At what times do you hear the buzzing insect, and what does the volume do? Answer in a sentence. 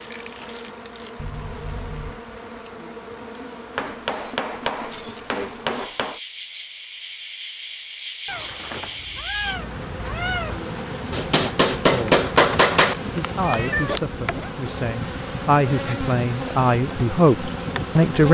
You can hear the buzzing insect from 0.0 to 18.2 s, getting louder.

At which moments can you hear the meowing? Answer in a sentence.
You can hear the meowing from 1.1 to 2.2 s, from 8.2 to 10.6 s and from 13.4 to 14.5 s.